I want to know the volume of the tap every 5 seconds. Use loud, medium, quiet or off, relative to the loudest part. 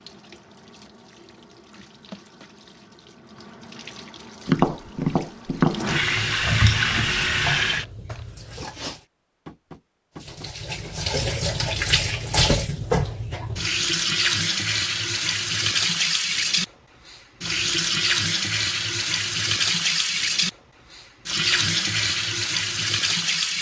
quiet, loud, loud, loud, loud.